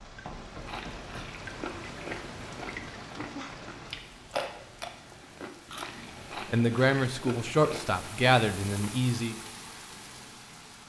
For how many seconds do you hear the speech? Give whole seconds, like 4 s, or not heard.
3 s.